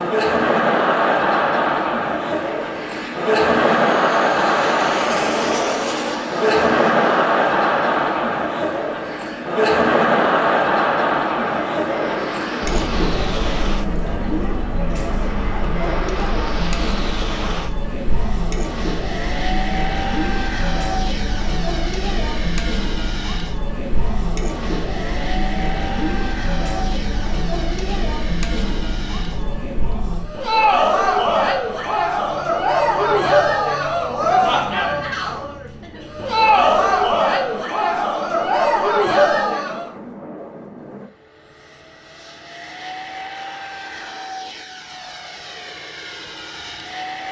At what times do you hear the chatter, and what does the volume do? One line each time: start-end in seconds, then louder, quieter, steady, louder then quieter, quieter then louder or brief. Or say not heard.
0.0-39.9 quieter then louder.